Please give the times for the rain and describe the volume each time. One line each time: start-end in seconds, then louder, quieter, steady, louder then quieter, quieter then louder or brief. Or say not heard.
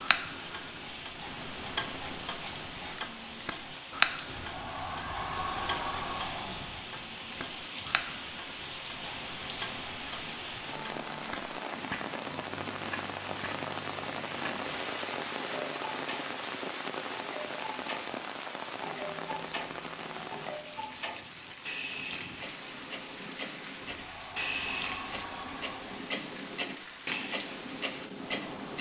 0.0-28.7 louder then quieter.